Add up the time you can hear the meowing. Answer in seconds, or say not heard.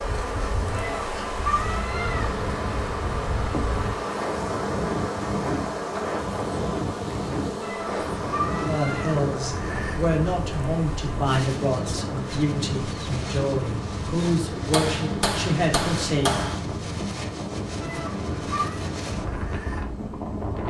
4 s.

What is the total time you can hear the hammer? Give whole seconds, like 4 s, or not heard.
2 s.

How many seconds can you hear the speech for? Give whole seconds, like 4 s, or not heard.
8 s.